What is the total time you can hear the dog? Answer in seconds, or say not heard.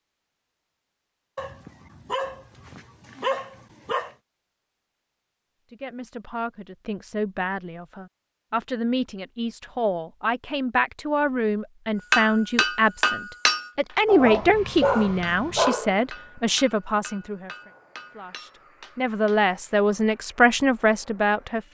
5 s.